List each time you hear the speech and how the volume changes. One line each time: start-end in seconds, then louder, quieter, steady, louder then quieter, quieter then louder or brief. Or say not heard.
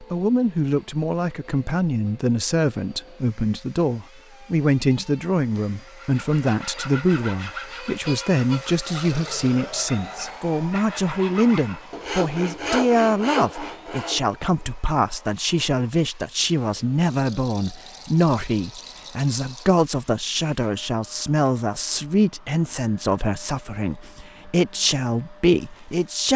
0.0-26.3 steady.